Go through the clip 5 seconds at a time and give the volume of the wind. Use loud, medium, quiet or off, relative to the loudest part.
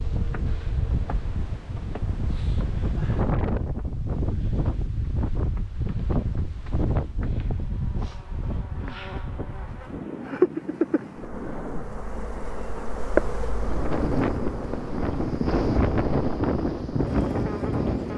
medium, medium, medium, loud.